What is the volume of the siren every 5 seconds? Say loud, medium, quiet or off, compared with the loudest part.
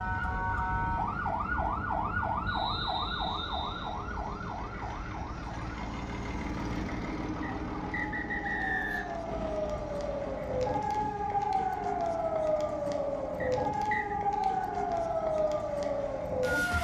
loud, medium, loud, loud.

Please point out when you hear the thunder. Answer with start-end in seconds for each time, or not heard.
9.2-11.1.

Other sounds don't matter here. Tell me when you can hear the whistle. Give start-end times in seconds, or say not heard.
2.5-4.0, 7.4-9.2, 13.4-14.2.